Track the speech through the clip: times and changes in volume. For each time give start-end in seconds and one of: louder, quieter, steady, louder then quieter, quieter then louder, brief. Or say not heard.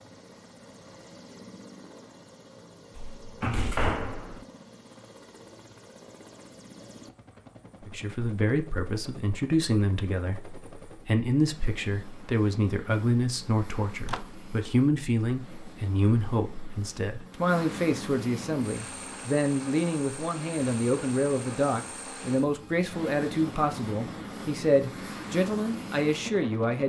7.8-26.8 steady.